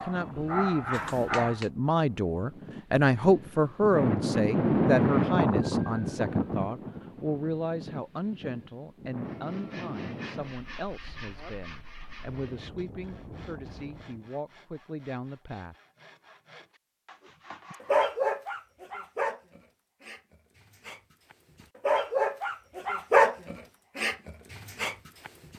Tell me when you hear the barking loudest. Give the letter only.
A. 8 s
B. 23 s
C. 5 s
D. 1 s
B.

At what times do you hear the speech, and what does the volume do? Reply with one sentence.
The speech can be heard from 0.0 to 15.8 s, getting quieter.